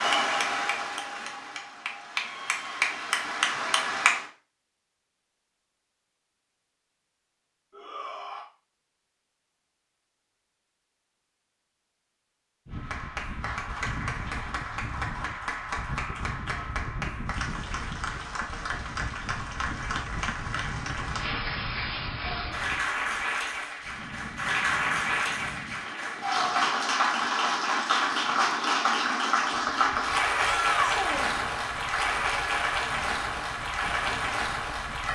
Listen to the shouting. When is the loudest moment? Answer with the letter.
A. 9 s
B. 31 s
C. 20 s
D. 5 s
B.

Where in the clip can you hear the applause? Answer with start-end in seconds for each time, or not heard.
0.0-4.2, 12.7-35.1.